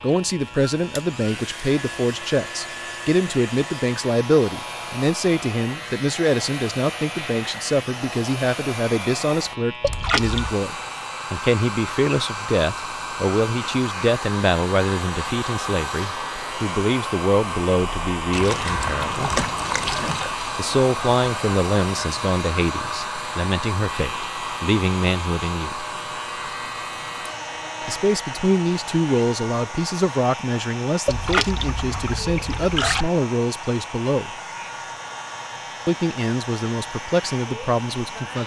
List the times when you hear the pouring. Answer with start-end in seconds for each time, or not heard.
9.8-10.6, 18.3-20.3, 31.1-33.1.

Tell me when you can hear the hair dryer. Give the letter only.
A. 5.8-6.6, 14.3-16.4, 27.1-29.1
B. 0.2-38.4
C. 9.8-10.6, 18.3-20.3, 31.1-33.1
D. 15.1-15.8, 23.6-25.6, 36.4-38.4
B.